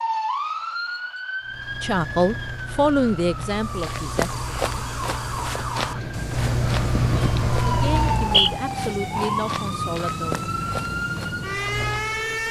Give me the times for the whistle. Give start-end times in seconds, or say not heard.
8.0-8.5.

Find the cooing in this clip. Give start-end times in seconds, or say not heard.
not heard.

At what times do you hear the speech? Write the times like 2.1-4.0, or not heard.
1.8-4.5, 7.7-10.4.